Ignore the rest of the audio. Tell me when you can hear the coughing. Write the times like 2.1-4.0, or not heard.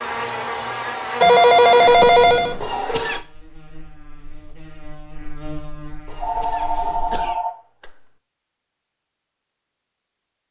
2.6-3.2, 6.0-7.4.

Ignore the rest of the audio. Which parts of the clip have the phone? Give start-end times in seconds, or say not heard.
1.2-2.6, 6.2-8.1.